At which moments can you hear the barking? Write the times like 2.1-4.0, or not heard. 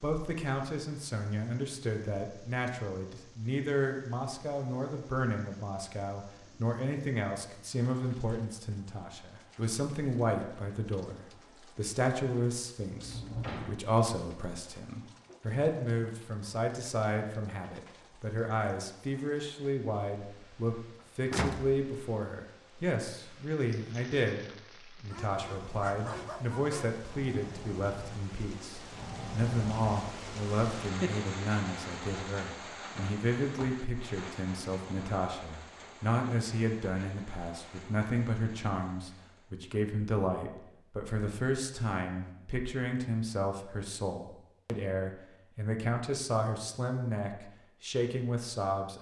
25.1-27.0.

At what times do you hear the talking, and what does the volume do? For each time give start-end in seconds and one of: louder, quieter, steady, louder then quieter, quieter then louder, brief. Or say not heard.
0.0-48.9 steady.